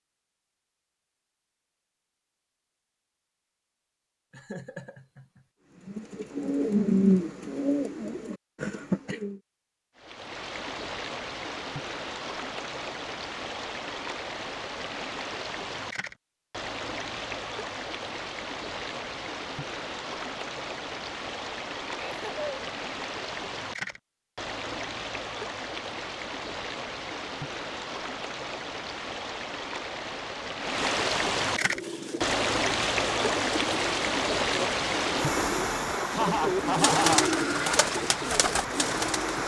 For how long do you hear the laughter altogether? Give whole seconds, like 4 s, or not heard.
3 s.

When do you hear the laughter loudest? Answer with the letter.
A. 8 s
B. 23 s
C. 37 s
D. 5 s
C.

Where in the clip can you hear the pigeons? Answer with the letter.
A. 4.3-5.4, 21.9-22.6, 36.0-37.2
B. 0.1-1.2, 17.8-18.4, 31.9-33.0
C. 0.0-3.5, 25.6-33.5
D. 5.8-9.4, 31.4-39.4
D.